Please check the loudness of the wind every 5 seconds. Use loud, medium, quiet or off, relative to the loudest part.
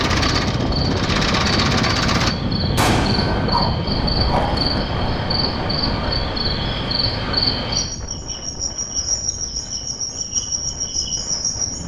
loud, medium, quiet.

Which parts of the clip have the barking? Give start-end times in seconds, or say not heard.
3.3-4.7.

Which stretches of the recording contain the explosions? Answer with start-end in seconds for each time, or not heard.
2.8-3.5.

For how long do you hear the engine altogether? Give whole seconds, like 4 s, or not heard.
2 s.